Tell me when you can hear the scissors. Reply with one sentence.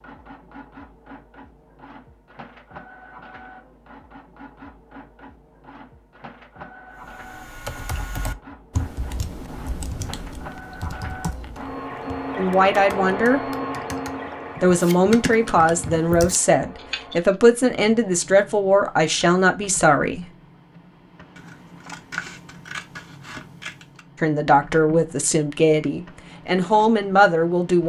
The scissors can be heard from 21.4 to 24.1 s.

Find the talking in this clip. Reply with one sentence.
You can hear the talking from 12.3 to 13.5 s, from 14.6 to 20.3 s and from 24.2 to 27.8 s.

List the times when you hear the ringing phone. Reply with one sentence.
The ringing phone can't be heard in this clip.